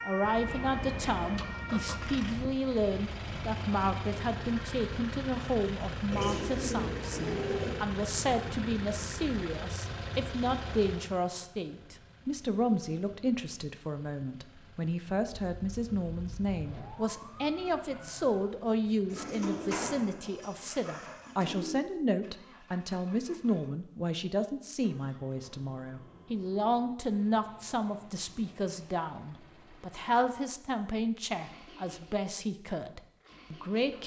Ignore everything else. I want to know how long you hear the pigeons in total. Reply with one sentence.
You can hear the pigeons for 4 seconds altogether.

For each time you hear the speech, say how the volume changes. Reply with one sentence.
The speech can be heard from 0.0 to 34.0 s, at a steady volume.